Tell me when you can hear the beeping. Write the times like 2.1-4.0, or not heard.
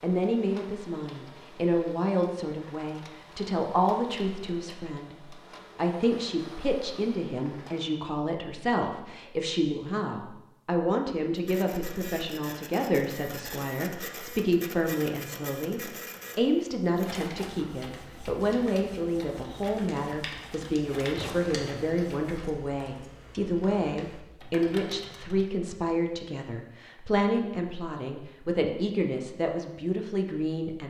not heard.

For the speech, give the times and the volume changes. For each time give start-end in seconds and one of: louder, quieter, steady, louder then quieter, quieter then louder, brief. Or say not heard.
0.0-30.8 steady.